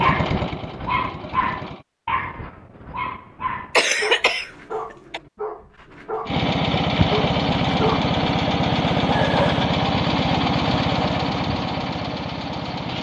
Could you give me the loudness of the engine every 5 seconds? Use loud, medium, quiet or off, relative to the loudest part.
medium, loud, loud.